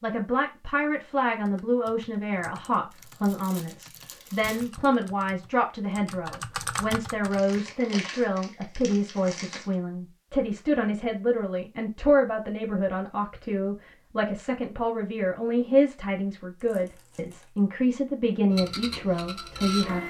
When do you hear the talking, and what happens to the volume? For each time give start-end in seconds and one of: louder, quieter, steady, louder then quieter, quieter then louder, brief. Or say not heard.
0.0-20.0 steady.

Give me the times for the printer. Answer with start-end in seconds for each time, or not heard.
18.5-20.0.